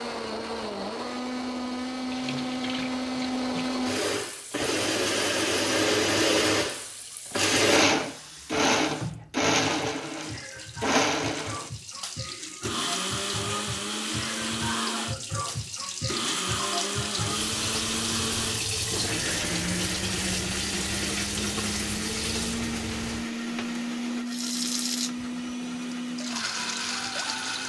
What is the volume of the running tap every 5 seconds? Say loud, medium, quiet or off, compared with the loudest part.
medium, medium, medium, loud, loud, medium.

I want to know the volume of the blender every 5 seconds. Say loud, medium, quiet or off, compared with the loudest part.
medium, loud, medium, medium, medium, medium.